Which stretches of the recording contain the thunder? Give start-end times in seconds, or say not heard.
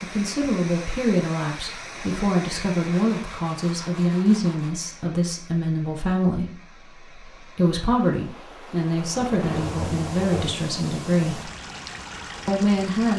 9.2-10.6.